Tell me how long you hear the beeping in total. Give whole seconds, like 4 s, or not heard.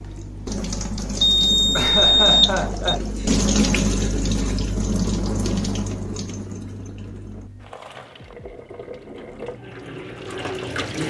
2 s.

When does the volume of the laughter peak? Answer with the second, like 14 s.
2 s.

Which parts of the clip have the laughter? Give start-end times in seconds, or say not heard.
1.8-3.4.